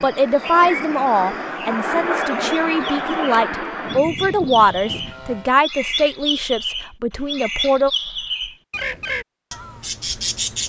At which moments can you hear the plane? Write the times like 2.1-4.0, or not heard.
0.0-5.6.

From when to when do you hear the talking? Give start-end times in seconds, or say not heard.
0.0-7.9.